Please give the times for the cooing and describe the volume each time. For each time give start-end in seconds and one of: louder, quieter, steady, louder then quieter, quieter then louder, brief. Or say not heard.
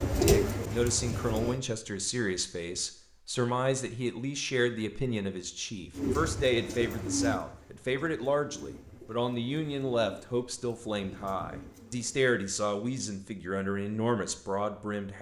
0.0-1.6 brief
5.9-12.2 quieter then louder.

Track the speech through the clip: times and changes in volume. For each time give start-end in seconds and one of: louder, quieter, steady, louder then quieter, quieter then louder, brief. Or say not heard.
0.0-15.1 steady.